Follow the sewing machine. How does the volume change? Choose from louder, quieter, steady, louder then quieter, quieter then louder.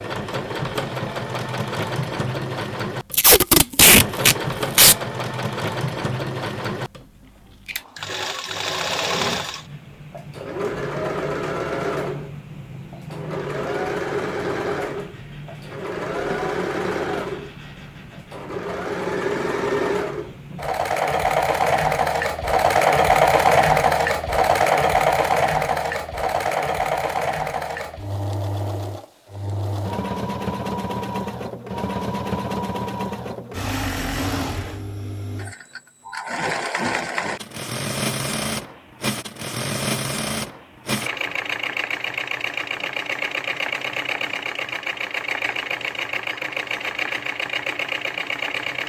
louder then quieter.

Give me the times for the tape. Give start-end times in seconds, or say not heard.
3.1-5.0.